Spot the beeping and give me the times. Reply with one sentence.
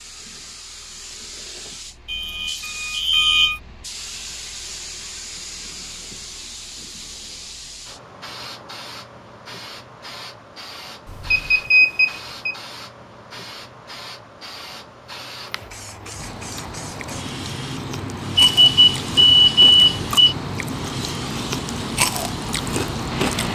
You can hear the beeping from 2.0 to 3.6 s, from 11.1 to 12.6 s and from 18.4 to 20.4 s.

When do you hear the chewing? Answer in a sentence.
You can hear the chewing from 15.3 to 23.4 s.